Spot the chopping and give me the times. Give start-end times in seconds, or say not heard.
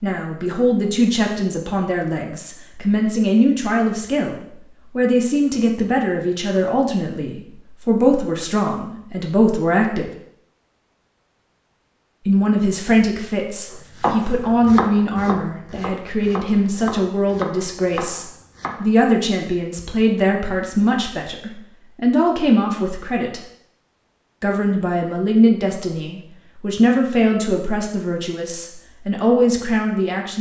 14.0-19.0.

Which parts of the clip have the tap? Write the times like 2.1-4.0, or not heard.
not heard.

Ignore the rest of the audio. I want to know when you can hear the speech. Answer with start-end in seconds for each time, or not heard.
0.0-10.1, 12.2-23.4, 24.4-30.3.